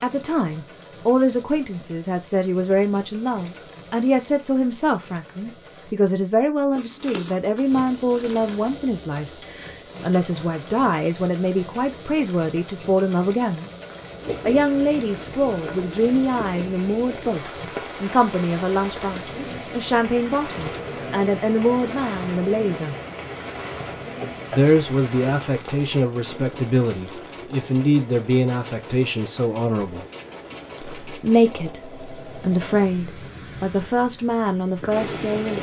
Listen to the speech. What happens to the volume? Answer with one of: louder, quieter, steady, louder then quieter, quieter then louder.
steady.